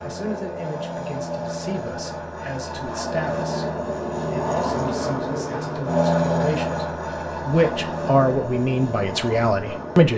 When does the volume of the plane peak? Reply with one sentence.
The loudest moment of the plane is at 6 seconds.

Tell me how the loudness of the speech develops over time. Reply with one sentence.
The volume of the speech goes up.